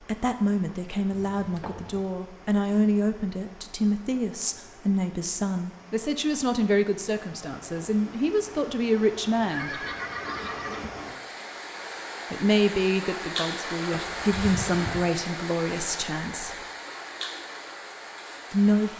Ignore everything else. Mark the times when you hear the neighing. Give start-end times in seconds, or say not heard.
1.1-2.1, 9.5-10.9, 13.9-15.0.